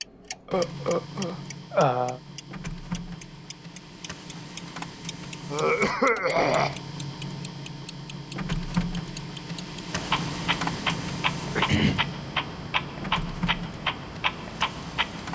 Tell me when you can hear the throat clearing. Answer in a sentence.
You can hear the throat clearing from 0.5 to 2.2 s, from 5.5 to 6.8 s and from 11.6 to 12.1 s.